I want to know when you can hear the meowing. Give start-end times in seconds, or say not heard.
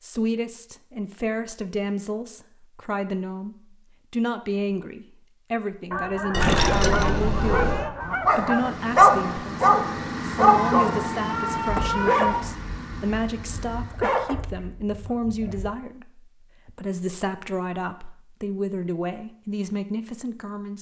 6.3-7.9, 10.4-12.5.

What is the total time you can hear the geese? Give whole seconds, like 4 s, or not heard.
3 s.